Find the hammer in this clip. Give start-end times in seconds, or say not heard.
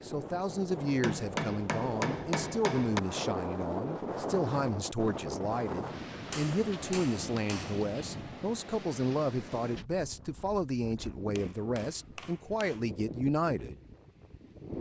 1.0-3.0, 6.3-7.9, 11.3-12.8.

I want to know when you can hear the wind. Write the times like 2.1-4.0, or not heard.
0.0-14.7.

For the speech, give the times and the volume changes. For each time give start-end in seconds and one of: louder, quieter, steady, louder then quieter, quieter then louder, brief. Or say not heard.
0.0-13.8 steady.